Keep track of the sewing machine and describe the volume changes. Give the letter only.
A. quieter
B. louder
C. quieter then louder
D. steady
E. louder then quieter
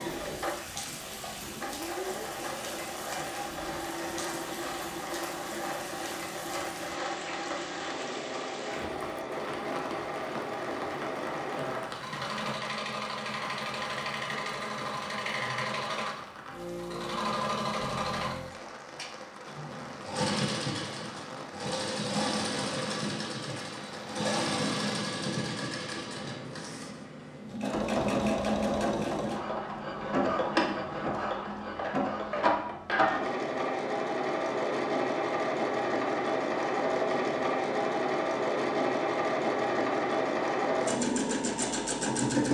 B.